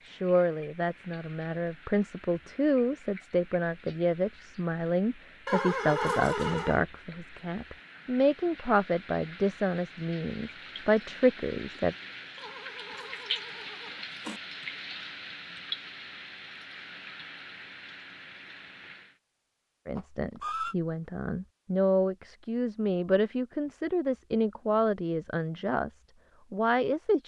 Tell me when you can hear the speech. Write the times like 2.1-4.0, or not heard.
0.1-11.9, 19.9-27.2.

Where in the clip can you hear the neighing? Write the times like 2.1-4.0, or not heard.
5.5-6.8, 12.3-14.4, 19.9-20.8.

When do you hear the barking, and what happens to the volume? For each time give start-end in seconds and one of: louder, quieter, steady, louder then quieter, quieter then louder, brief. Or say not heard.
not heard.